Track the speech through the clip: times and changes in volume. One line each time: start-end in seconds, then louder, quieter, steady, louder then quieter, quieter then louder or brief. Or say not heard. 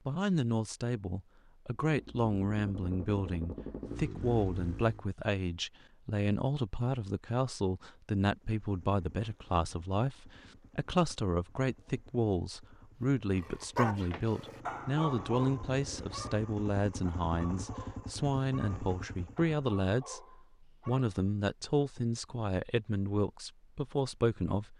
0.1-24.7 steady.